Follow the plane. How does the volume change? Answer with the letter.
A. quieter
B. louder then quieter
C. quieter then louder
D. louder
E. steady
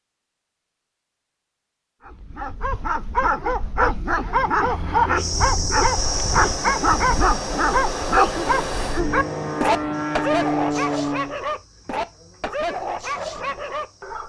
D.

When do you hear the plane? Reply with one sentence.
The plane can be heard from 4.6 to 11.3 s.